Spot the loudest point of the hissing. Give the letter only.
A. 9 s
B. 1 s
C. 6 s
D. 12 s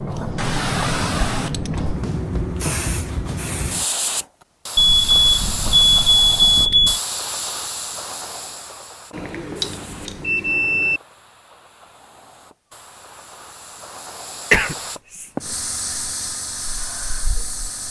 B.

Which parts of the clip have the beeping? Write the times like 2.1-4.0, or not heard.
4.8-7.0, 9.1-11.0.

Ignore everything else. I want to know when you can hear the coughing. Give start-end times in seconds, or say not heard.
14.5-15.3.